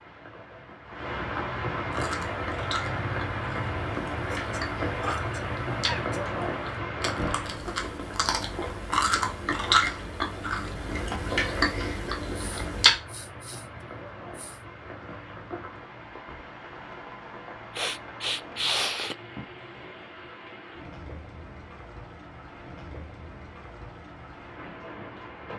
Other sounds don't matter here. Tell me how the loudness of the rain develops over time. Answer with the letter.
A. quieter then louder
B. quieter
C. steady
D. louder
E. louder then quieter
B.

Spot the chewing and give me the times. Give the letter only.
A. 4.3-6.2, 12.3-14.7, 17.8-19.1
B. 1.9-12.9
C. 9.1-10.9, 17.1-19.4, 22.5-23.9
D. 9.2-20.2
B.